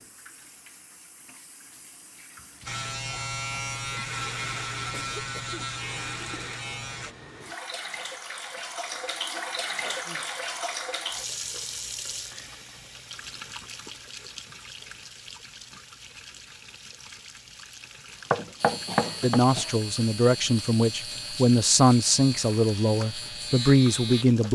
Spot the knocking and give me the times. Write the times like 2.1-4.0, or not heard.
18.3-19.4.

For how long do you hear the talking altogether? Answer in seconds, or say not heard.
5 s.